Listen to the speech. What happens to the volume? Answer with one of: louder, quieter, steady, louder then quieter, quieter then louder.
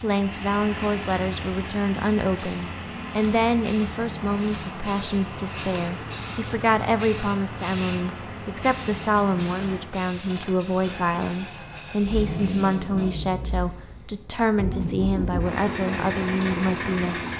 steady.